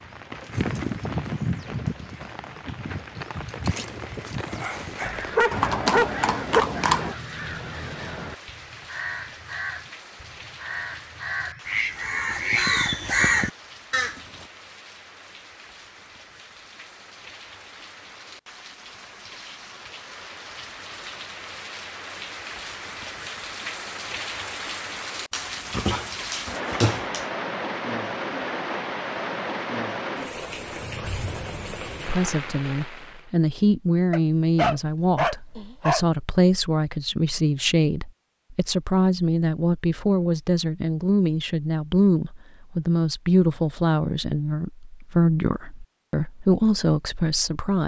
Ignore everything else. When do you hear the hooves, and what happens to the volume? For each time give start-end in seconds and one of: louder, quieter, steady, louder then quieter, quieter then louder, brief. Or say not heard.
0.5-7.2 quieter then louder.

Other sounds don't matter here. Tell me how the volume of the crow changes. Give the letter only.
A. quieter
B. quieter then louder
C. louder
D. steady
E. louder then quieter
C.